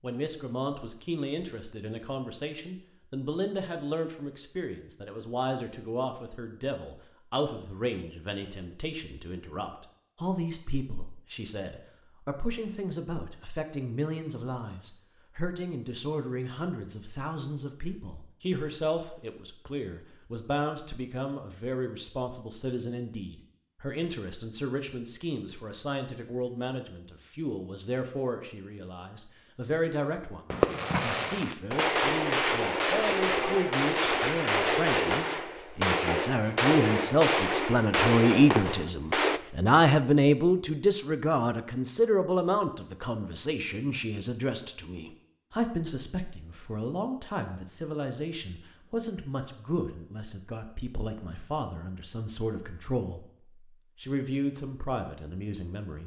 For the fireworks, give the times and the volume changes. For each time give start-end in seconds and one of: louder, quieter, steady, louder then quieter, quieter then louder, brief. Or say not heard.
30.5-39.4 steady.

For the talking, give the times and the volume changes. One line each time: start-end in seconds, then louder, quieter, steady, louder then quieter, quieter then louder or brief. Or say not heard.
0.0-53.2 louder then quieter
54.0-56.0 brief.